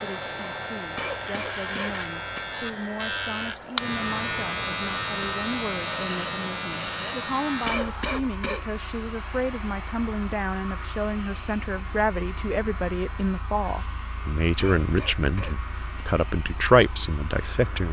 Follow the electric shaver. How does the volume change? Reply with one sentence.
The loudness of the electric shaver goes down.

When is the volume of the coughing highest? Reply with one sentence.
The loudest moment of the coughing is at 8 seconds.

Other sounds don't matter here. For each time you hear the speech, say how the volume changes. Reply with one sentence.
You can hear the speech from 0.0 to 17.8 s, getting louder.